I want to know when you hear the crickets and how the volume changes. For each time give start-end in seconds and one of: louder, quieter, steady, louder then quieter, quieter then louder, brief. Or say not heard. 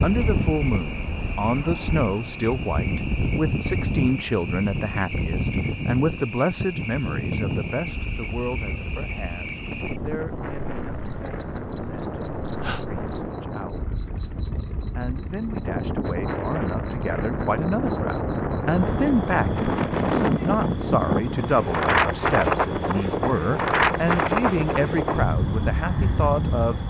0.0-26.8 steady.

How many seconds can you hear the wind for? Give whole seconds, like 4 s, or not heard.
27 s.